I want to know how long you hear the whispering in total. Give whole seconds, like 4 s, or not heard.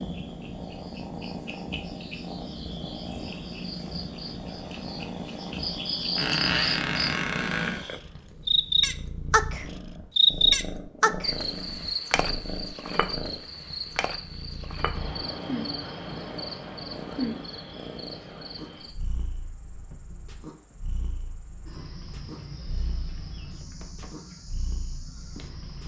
not heard.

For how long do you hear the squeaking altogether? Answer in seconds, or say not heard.
2 s.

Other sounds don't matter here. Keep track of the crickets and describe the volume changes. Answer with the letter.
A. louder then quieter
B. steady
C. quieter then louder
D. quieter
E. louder
A.